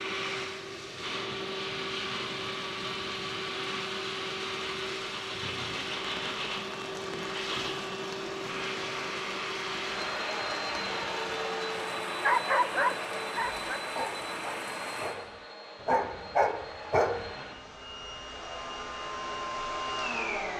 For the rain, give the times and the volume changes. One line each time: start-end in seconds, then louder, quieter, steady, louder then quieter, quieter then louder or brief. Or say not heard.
0.2-15.2 louder.